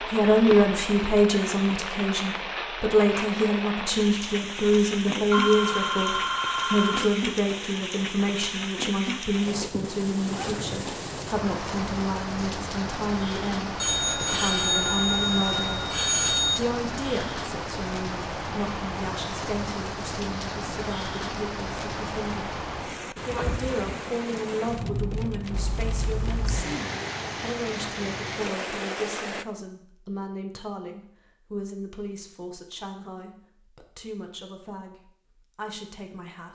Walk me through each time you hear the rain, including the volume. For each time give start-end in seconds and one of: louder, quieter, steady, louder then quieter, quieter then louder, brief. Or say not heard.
0.0-29.4 steady.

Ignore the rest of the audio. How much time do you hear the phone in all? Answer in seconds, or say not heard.
6 s.